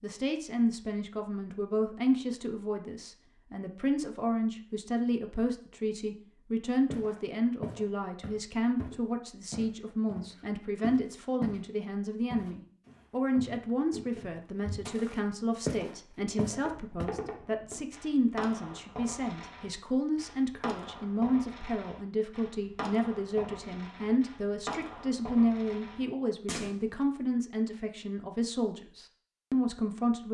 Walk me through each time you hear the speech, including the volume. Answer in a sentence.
The speech can be heard from 0.0 to 30.2 s, at a steady volume.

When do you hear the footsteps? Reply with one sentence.
The footsteps can be heard from 6.9 to 11.7 s and from 12.3 to 17.1 s.